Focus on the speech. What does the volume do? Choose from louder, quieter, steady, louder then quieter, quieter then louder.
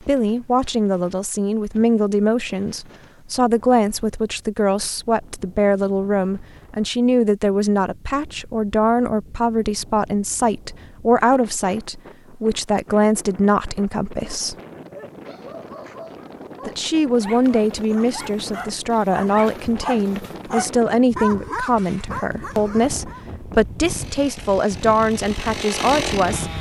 steady.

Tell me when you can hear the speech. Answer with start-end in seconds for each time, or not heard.
0.0-14.6, 16.6-26.5.